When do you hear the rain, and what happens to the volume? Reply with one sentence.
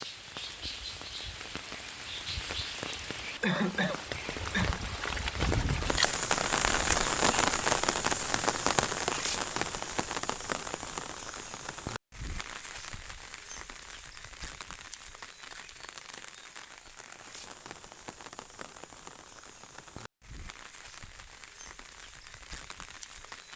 The rain can be heard from 0.0 to 23.5 s, getting louder then quieter.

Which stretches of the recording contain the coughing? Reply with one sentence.
You can hear the coughing from 3.4 to 4.8 s.